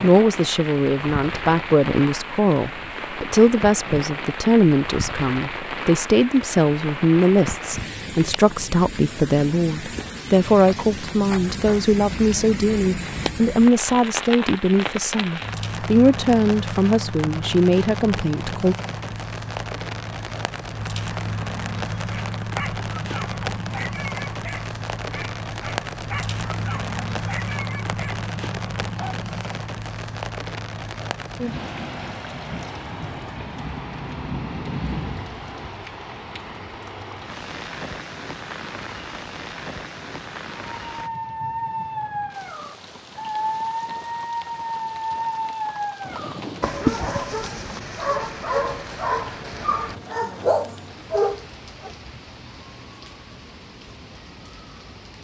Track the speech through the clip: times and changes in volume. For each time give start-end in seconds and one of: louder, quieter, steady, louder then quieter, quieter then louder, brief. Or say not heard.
0.0-18.8 steady.